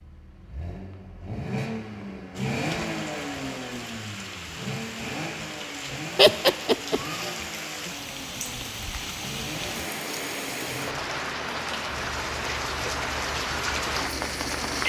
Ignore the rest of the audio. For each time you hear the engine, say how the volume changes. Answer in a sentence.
You can hear the engine from 0.0 to 14.8 s, getting quieter.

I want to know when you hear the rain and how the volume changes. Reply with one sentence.
You can hear the rain from 2.3 to 14.8 s, getting louder.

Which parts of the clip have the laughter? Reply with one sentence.
The laughter can be heard from 6.2 to 7.0 s.